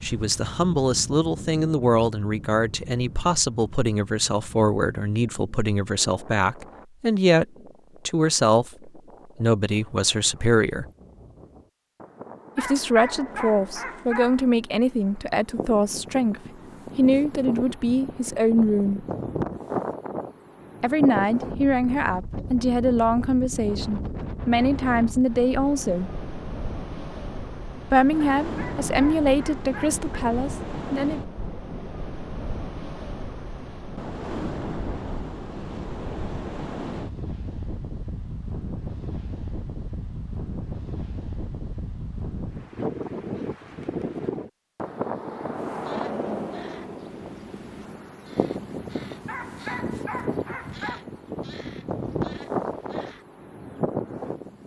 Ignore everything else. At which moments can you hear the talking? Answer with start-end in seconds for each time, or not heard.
0.0-7.5, 8.1-10.8, 12.6-19.1, 20.8-26.1, 27.9-31.2.